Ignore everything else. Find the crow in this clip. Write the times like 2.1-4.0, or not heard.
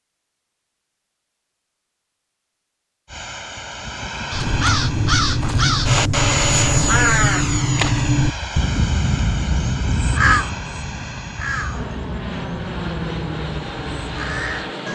4.3-14.8.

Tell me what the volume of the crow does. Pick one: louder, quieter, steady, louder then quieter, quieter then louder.
quieter.